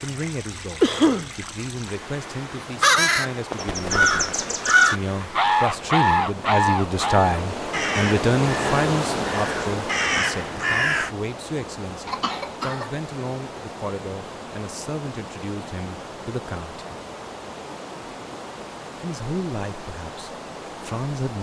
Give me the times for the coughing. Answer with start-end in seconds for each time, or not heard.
0.8-1.3, 12.1-12.9.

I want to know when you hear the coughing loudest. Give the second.
1 s.